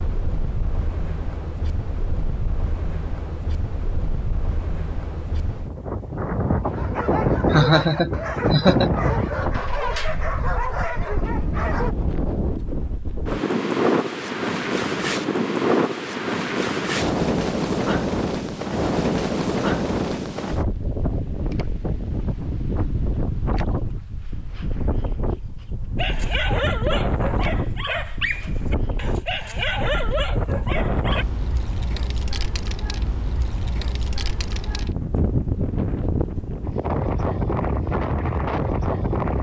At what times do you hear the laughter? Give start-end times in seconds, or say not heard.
7.5-8.9.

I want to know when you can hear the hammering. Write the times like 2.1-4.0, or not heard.
not heard.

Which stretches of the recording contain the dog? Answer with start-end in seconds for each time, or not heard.
6.7-11.9, 25.9-31.2.